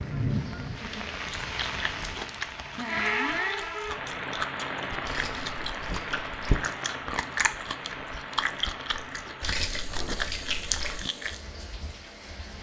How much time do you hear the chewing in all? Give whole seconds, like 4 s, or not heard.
10 s.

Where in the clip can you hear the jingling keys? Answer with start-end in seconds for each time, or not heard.
0.3-2.2, 5.0-6.6, 9.4-11.0.